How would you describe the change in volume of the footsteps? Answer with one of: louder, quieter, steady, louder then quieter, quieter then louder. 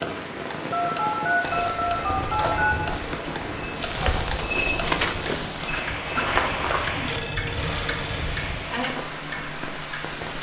louder then quieter.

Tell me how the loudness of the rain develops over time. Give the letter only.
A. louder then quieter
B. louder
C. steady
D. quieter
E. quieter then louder
C.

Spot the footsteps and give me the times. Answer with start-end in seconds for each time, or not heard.
1.4-8.6.